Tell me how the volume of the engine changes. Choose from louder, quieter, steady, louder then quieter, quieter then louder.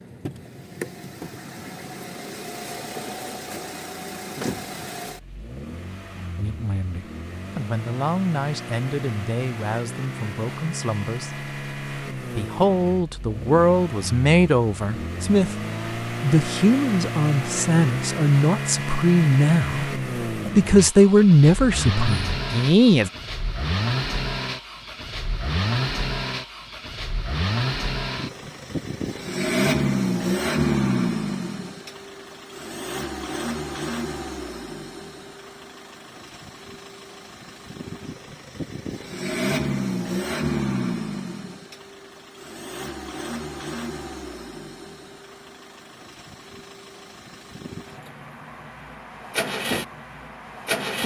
louder then quieter.